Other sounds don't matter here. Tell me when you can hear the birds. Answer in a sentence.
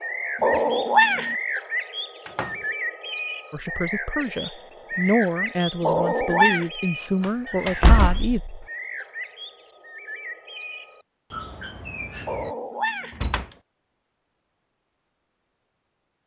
The birds can be heard from 0.0 to 12.6 s.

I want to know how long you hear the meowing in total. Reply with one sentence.
You can hear the meowing for 3 seconds altogether.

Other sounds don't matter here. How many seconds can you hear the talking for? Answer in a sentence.
The talking can be heard for 5 seconds in total.